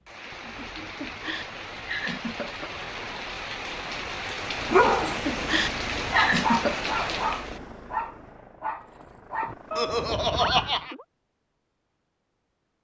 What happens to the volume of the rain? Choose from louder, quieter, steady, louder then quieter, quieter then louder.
louder.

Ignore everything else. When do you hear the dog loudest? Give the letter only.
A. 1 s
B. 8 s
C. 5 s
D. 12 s
C.